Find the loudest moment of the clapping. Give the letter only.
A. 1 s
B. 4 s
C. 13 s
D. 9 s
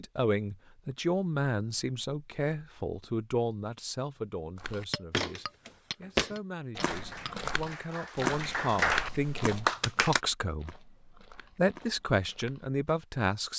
D.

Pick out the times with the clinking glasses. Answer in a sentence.
You can hear the clinking glasses from 4.9 to 7.3 s.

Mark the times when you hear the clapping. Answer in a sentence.
The clapping can be heard from 6.8 to 10.2 s.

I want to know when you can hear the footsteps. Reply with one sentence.
The footsteps can be heard from 4.5 to 13.1 s.